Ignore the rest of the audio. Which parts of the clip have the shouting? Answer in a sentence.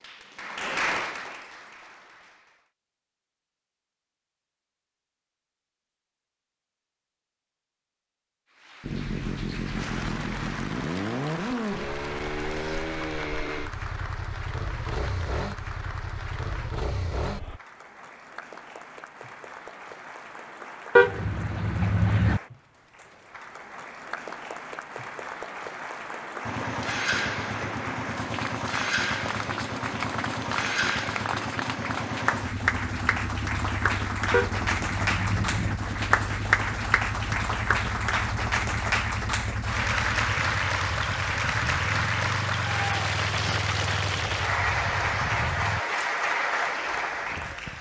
You can't hear the shouting here.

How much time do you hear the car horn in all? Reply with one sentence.
You can hear the car horn for 3 seconds altogether.